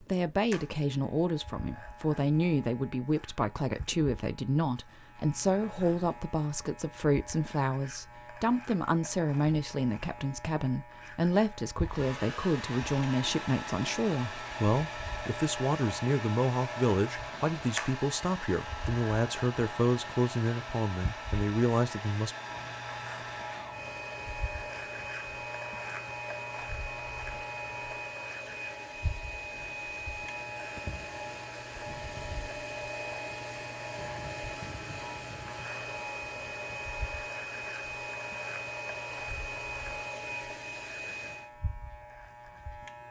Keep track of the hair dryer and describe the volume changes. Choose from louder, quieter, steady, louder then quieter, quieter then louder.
steady.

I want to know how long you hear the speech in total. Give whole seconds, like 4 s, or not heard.
22 s.